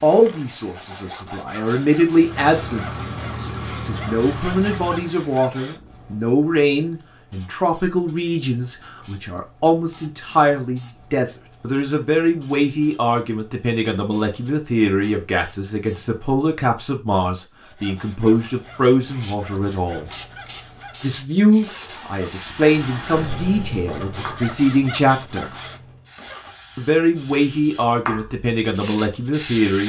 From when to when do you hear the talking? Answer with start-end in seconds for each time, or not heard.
0.0-20.1, 21.0-25.5, 26.8-29.8.